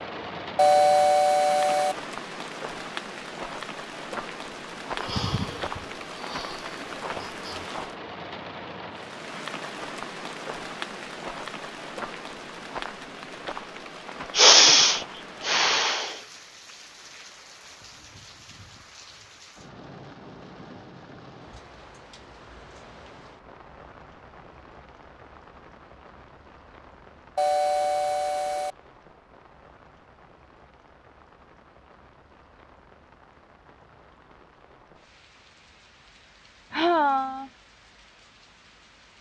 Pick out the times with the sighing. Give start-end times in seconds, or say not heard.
5.0-7.7, 14.3-16.1, 36.7-37.5.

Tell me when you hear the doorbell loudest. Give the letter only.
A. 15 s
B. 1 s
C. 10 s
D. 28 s
B.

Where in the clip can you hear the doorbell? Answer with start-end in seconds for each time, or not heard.
0.6-1.9, 27.4-28.8.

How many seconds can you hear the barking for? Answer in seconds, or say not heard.
not heard.